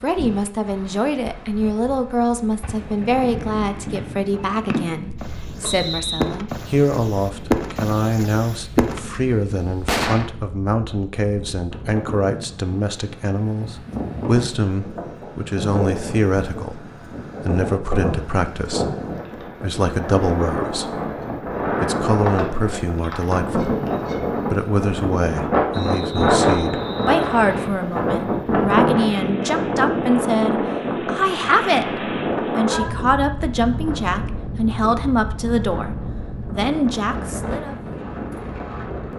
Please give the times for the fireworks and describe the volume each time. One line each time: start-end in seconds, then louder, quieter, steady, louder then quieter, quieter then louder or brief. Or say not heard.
2.6-10.3 louder.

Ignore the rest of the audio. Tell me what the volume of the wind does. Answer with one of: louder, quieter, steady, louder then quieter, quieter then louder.
louder then quieter.